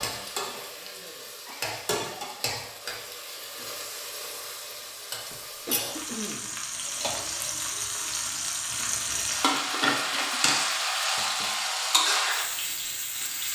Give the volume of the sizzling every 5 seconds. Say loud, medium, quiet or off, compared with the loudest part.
medium, loud, loud.